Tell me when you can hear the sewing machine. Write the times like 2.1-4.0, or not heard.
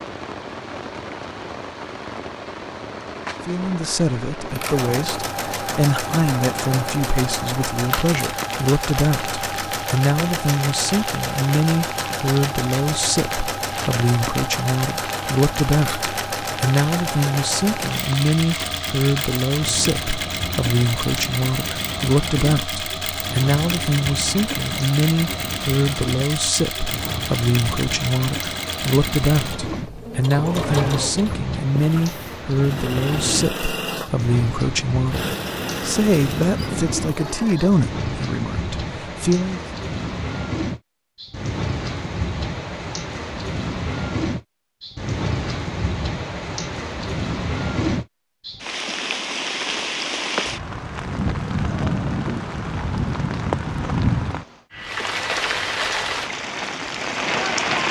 4.5-37.9.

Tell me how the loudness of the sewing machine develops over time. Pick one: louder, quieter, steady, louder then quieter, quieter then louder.
steady.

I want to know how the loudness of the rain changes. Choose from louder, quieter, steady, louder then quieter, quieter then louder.
louder.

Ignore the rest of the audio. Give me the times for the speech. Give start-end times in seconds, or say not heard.
3.5-39.6.